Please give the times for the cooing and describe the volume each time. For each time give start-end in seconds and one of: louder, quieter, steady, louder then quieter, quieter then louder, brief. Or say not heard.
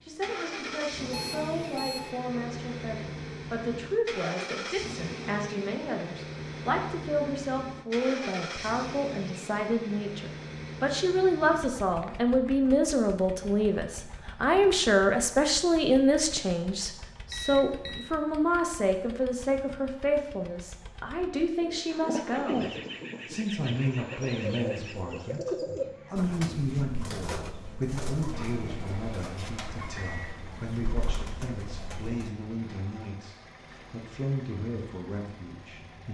21.6-32.3 quieter.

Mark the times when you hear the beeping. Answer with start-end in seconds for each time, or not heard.
1.1-2.1, 17.2-18.1, 28.3-30.4.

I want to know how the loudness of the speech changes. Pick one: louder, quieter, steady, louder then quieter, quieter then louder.
louder then quieter.